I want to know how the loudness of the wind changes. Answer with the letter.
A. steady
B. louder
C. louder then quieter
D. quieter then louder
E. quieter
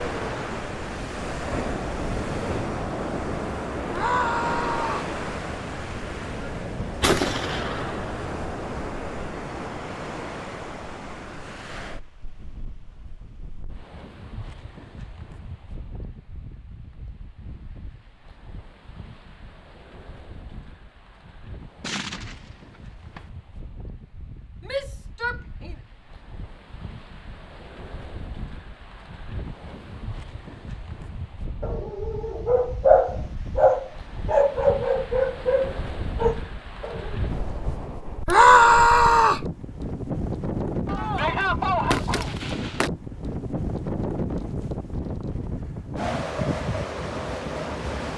D.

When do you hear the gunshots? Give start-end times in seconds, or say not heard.
7.0-8.3, 21.8-23.2, 40.9-42.9.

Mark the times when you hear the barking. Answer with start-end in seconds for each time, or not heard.
31.6-37.2.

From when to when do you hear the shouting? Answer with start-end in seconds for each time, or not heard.
3.9-5.1, 24.6-25.8, 38.2-39.5.